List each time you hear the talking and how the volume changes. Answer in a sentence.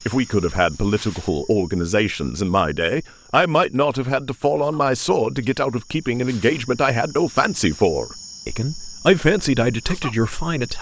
You can hear the talking from 0.1 to 10.7 s, at a steady volume.